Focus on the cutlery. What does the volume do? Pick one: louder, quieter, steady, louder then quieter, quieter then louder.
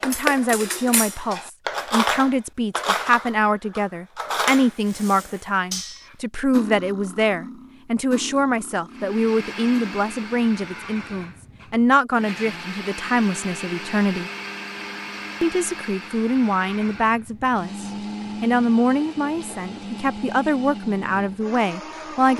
quieter.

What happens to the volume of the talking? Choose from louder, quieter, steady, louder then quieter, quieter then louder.
steady.